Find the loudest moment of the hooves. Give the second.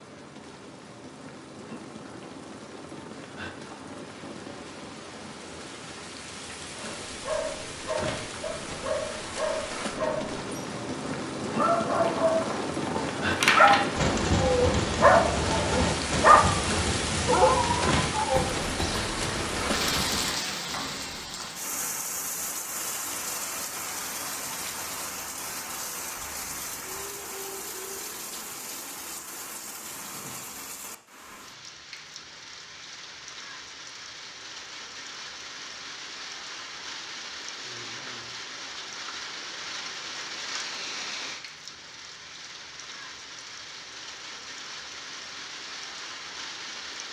14 s.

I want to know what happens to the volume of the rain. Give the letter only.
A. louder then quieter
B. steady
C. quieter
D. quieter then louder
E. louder
A.